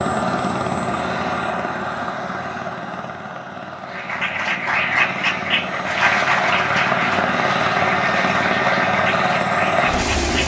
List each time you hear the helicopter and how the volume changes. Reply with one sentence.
You can hear the helicopter from 0.0 to 10.4 s, getting quieter then louder.